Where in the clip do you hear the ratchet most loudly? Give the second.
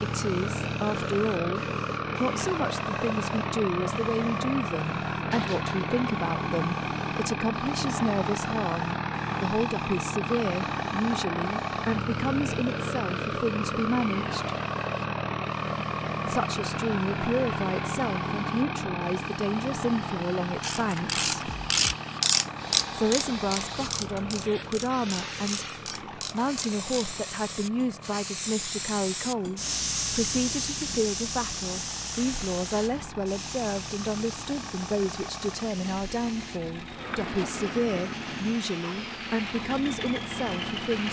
22 s.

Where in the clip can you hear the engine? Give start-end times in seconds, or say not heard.
0.0-41.0.